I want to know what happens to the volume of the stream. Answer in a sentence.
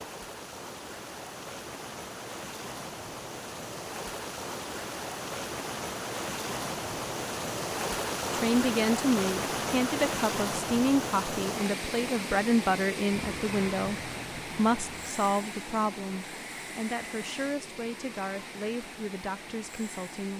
The loudness of the stream goes up, then down.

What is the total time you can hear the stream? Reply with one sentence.
You can hear the stream for 20 seconds altogether.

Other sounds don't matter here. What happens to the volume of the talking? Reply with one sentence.
The loudness of the talking goes down.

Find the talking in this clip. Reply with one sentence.
The talking can be heard from 8.3 to 20.3 s.